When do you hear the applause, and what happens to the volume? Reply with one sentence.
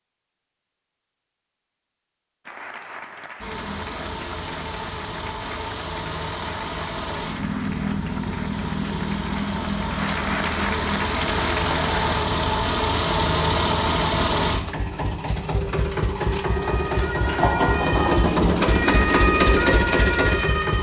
The applause can be heard from 2.5 to 12.2 s, getting louder.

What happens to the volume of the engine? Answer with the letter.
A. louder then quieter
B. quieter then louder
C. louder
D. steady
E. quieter
C.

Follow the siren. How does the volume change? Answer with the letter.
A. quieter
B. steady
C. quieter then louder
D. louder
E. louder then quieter
D.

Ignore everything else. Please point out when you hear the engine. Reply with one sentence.
The engine can be heard from 3.4 to 20.7 s.